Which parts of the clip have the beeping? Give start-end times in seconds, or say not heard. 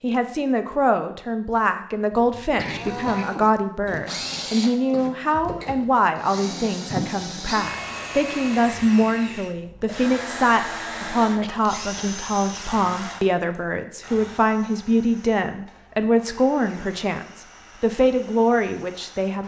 not heard.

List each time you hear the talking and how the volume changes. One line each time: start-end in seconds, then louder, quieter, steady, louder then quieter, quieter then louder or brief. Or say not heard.
0.0-19.4 steady.